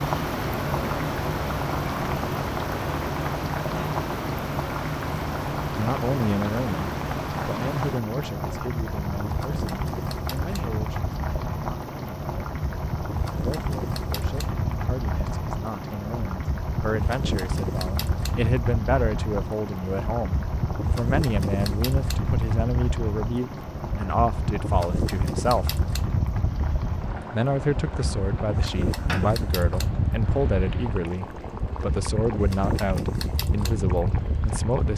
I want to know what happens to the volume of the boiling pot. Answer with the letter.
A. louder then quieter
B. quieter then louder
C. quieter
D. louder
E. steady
C.